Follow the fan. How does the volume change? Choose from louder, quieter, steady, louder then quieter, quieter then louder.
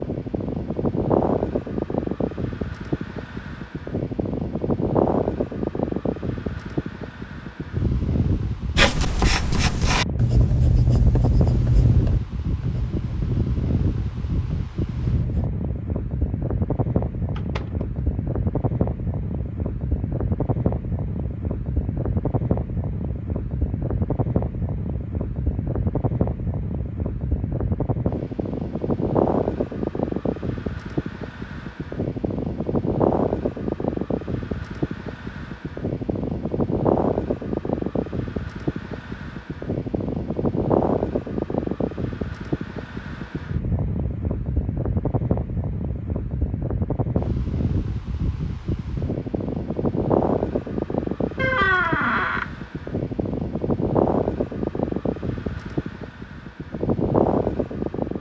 steady.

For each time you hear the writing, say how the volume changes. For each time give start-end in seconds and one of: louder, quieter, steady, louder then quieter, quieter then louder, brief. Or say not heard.
8.8-15.5 quieter.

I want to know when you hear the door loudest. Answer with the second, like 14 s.
52 s.